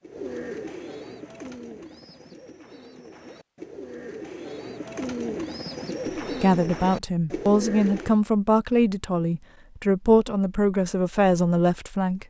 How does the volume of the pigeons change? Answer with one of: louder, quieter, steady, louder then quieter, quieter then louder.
quieter then louder.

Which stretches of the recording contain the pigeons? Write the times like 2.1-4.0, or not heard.
0.0-8.2.